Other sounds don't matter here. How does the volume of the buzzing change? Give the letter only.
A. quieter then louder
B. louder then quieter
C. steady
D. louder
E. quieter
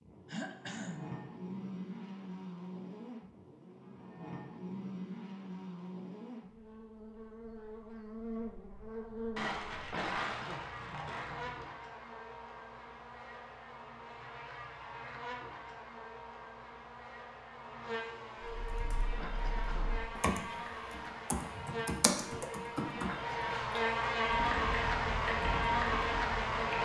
D.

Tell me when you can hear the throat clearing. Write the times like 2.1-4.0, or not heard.
0.2-1.3, 9.9-10.7, 19.2-19.9.